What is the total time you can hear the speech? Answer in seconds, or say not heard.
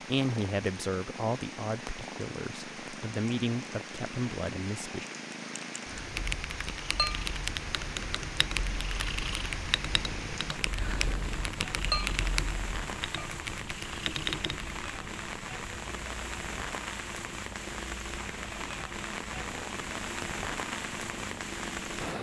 5 s.